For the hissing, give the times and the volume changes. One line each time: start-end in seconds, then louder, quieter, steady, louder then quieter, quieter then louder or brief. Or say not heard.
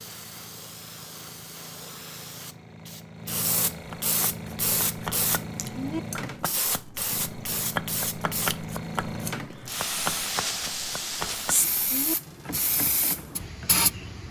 0.0-14.2 louder.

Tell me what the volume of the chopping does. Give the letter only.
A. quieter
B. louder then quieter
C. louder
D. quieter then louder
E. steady
E.